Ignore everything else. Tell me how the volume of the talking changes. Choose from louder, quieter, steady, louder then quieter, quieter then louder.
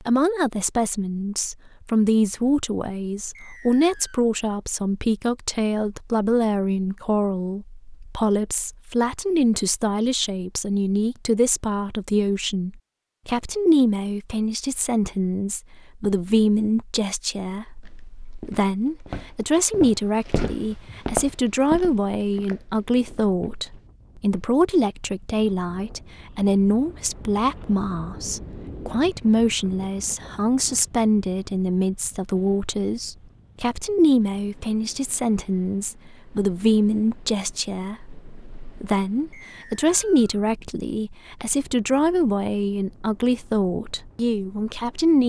steady.